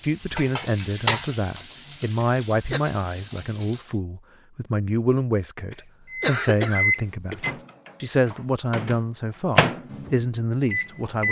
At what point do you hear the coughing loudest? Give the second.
6 s.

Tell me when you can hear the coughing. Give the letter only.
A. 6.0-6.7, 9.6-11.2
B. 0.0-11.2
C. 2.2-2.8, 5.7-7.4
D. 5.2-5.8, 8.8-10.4
C.